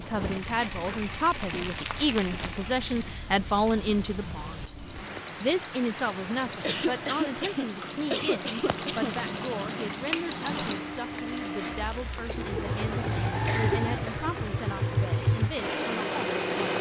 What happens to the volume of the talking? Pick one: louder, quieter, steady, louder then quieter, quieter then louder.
quieter.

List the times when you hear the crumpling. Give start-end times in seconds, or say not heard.
1.3-2.5, 8.6-9.2, 11.7-12.4.